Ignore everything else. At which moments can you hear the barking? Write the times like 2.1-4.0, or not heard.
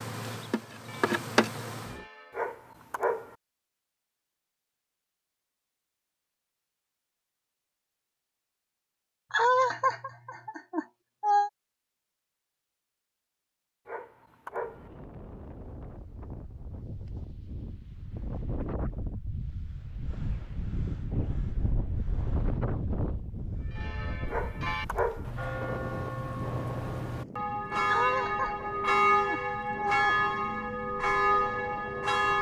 2.3-3.4, 13.8-14.9, 24.3-25.3.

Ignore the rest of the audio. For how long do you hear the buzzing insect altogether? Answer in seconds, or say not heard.
2 s.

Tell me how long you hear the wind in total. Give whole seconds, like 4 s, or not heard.
18 s.